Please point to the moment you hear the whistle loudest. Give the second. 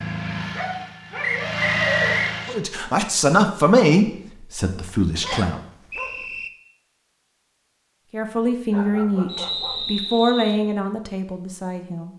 2 s.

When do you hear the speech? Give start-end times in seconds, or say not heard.
2.5-5.6, 8.1-12.1.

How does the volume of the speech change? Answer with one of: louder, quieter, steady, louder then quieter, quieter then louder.
quieter.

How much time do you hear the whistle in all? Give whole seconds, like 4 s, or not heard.
4 s.